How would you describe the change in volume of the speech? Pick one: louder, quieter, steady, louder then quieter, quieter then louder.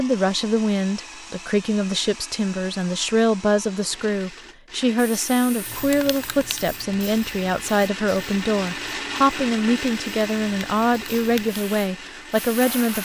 steady.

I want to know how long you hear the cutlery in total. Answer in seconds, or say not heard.
not heard.